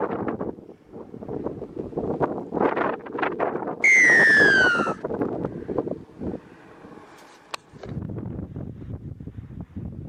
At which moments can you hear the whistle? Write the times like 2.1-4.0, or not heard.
3.8-5.0.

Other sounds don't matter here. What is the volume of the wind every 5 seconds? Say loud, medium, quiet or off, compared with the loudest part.
loud, medium.